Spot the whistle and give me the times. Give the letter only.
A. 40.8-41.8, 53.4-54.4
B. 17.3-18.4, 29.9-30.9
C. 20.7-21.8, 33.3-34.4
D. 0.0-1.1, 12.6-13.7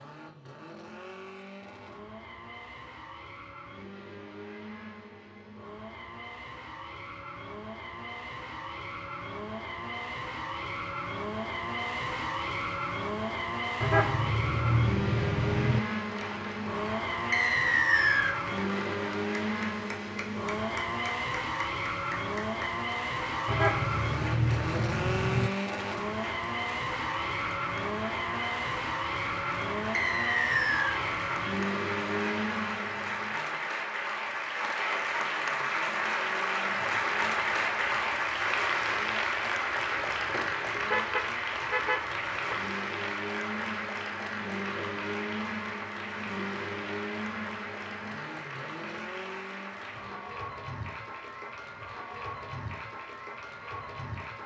B.